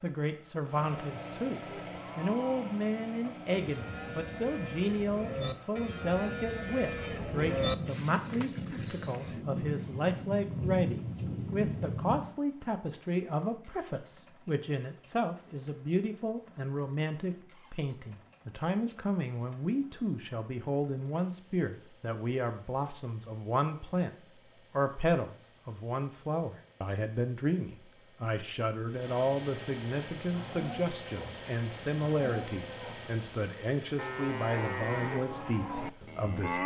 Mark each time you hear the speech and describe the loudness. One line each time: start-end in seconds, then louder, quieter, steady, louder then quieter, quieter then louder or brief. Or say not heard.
0.0-36.6 steady.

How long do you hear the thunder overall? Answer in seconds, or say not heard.
5 s.